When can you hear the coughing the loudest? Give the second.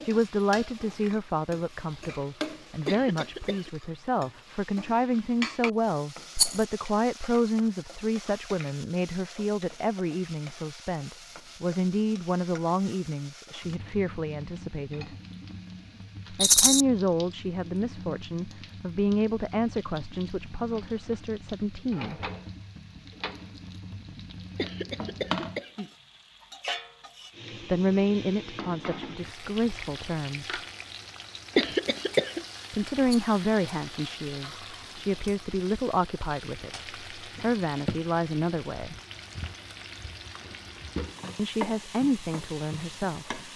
32 s.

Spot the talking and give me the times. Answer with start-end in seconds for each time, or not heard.
0.0-15.1, 16.3-22.2, 27.6-30.6, 32.7-39.0, 41.4-43.5.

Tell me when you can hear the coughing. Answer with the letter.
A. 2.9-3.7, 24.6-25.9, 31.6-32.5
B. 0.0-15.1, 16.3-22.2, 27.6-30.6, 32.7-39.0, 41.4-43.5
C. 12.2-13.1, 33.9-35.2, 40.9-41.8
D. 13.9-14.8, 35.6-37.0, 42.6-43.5
A.